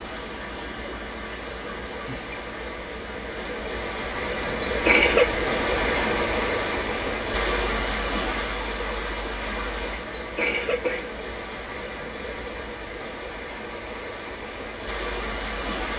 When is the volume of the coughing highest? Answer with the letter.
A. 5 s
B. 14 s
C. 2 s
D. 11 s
A.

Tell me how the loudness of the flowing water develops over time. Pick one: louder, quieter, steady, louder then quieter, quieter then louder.
louder then quieter.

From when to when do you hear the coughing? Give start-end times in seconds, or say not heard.
4.4-5.3, 9.9-11.1.